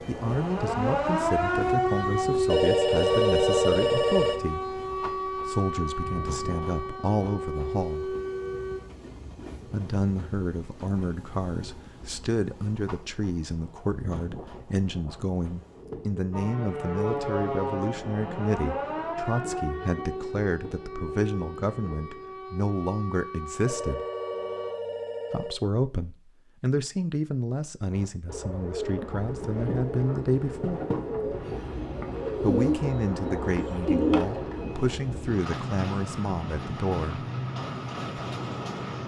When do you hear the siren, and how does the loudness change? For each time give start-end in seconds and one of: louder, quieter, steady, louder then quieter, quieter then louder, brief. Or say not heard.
0.0-8.8 quieter
16.3-24.7 quieter.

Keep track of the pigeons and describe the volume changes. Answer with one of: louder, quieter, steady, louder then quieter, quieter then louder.
louder.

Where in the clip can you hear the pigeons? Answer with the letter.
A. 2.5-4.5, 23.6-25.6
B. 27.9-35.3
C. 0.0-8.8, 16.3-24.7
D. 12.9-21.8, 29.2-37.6
B.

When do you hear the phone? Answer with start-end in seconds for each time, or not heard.
2.5-4.5, 23.6-25.6.